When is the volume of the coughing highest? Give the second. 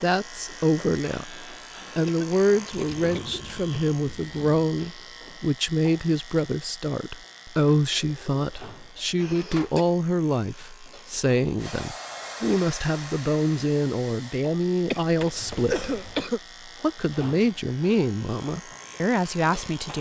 16 s.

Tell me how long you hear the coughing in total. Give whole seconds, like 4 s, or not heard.
4 s.